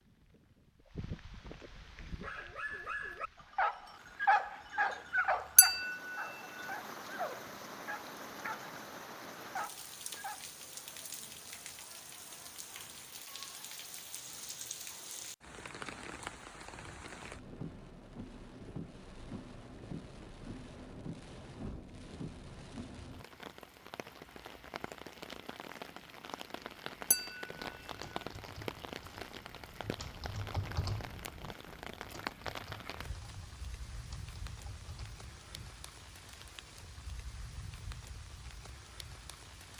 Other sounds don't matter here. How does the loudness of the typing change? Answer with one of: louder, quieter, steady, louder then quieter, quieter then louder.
louder then quieter.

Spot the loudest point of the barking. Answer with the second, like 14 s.
4 s.